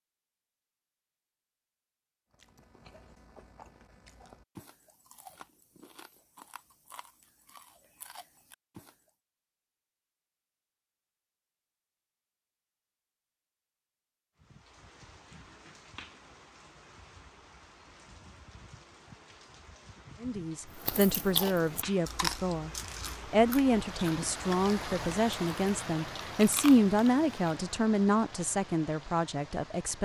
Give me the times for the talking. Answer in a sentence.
The talking can be heard from 20.2 to 22.7 s and from 23.3 to 29.9 s.